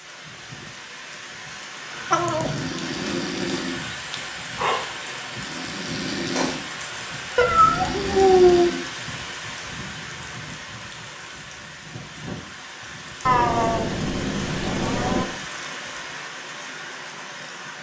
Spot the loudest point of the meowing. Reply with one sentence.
The loudest moment of the meowing is at 8 seconds.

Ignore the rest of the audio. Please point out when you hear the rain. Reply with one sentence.
The rain can be heard from 0.0 to 17.7 s.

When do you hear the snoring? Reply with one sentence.
The snoring can be heard from 1.9 to 8.8 s.